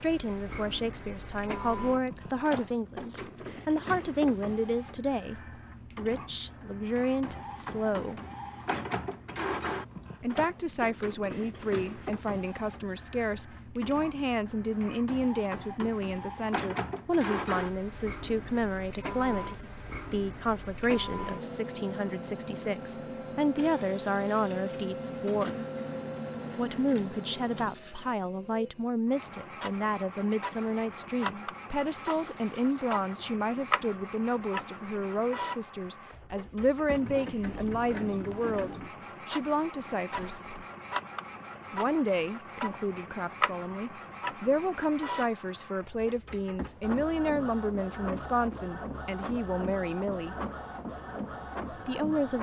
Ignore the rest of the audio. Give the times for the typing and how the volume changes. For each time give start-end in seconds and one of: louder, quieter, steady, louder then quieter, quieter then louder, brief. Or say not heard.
not heard.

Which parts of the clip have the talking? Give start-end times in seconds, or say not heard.
0.0-8.2, 10.2-25.6, 26.6-40.4, 41.7-50.4, 51.7-52.3.